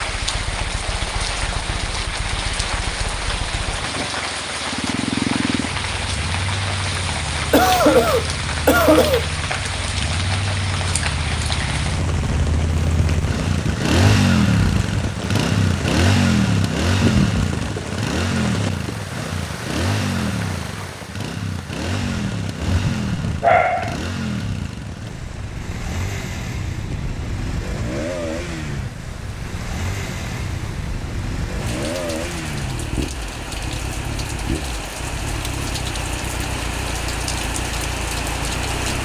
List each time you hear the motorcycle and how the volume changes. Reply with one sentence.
You can hear the motorcycle from 0.0 to 39.0 s, getting louder then quieter.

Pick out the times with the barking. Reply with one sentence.
You can hear the barking from 22.6 to 23.9 s.